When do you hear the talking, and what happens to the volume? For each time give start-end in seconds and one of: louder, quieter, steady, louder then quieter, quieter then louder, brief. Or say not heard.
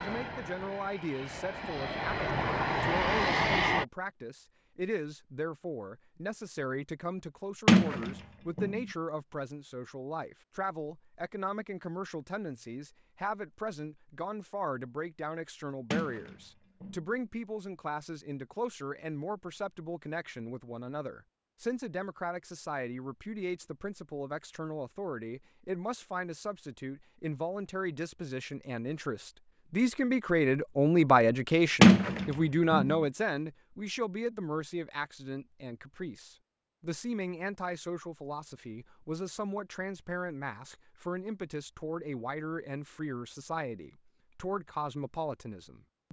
0.0-46.0 louder then quieter.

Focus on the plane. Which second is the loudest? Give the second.
3 s.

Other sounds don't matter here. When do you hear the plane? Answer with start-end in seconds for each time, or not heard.
0.0-3.9.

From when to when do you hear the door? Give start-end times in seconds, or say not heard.
7.7-8.8, 15.9-17.1, 31.8-33.0.